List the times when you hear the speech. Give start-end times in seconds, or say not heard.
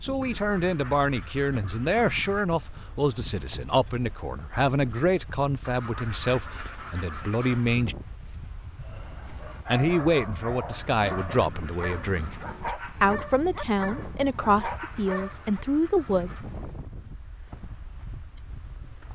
0.0-8.0, 9.7-16.3.